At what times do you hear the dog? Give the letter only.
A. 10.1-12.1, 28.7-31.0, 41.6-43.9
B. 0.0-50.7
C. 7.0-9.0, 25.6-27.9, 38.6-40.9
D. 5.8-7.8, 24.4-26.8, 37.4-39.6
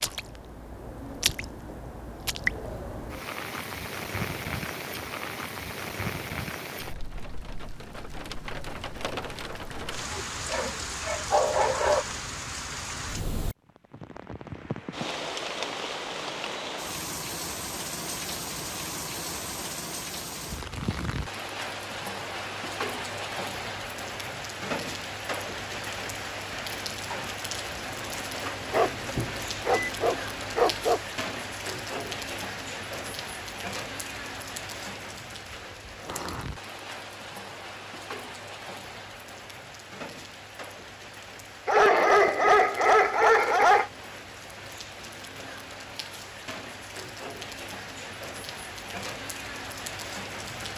A.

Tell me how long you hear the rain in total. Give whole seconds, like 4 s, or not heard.
51 s.